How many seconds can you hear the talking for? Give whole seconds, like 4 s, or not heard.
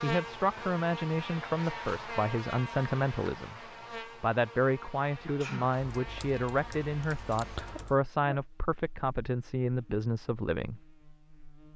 10 s.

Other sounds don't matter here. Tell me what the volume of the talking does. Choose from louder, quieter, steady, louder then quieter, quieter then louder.
steady.